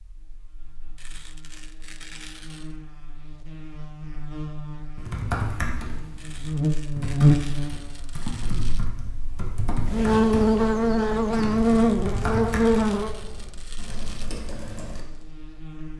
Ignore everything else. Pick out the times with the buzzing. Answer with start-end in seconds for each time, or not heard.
0.0-15.9.